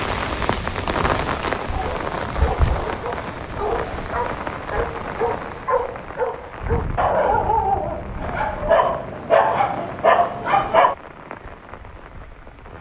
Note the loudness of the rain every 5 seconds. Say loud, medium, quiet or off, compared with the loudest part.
loud, medium, quiet.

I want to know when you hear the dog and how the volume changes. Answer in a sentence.
You can hear the dog from 1.7 to 10.9 s, getting louder.